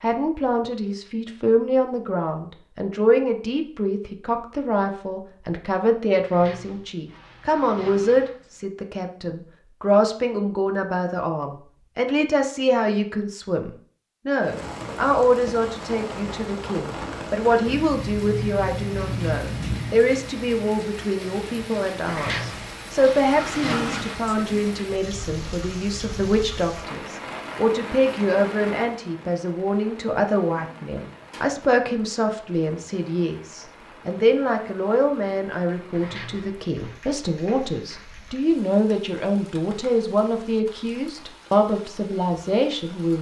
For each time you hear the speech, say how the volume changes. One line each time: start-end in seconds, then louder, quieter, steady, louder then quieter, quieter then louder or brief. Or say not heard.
0.0-43.1 steady.